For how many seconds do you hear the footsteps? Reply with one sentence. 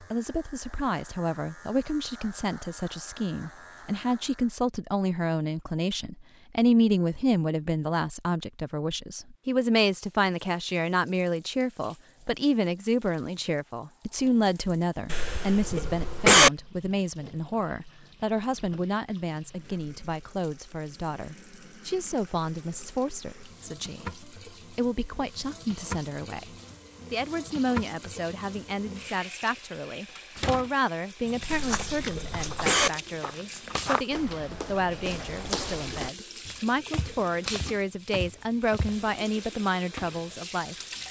The footsteps can be heard for 8 seconds in total.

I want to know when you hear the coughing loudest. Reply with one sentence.
The loudest moment of the coughing is at 16 seconds.